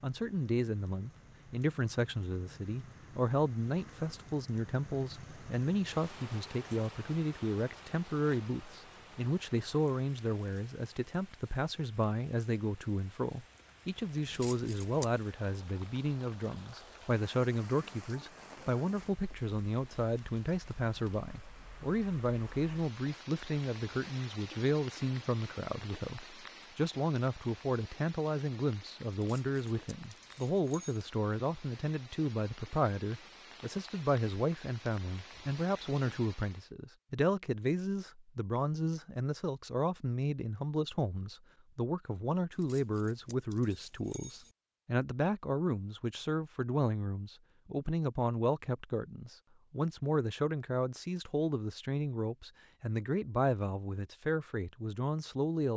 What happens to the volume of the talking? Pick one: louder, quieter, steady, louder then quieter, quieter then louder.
steady.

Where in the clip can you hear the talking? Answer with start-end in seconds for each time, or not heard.
0.0-55.7.